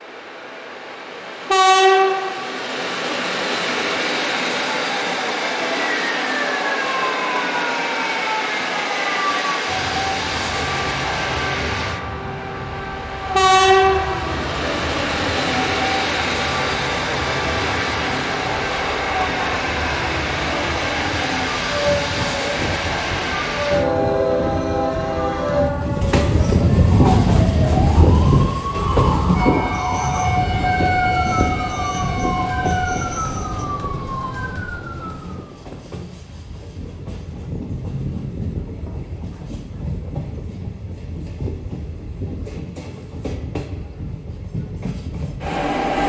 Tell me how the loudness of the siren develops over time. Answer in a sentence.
The loudness of the siren stays about the same.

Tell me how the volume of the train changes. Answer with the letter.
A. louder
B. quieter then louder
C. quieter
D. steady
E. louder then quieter
C.